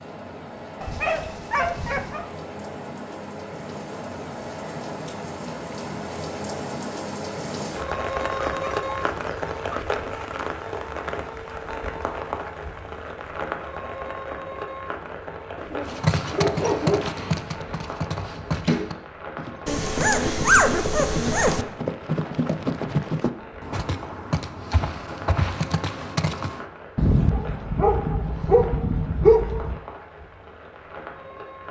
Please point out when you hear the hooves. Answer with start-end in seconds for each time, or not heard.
15.8-26.6.